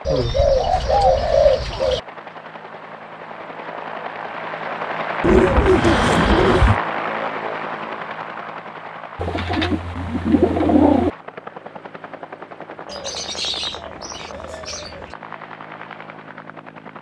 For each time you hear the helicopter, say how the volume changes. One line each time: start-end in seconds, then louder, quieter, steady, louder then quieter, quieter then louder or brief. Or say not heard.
0.0-16.9 louder then quieter.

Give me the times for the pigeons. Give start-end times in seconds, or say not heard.
0.1-2.0, 5.2-6.8, 9.2-11.1, 12.8-15.2.